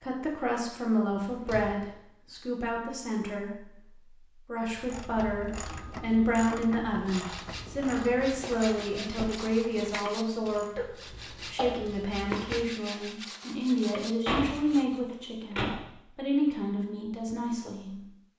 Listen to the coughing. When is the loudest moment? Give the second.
12 s.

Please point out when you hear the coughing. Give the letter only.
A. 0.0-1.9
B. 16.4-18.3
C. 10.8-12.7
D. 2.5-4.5
C.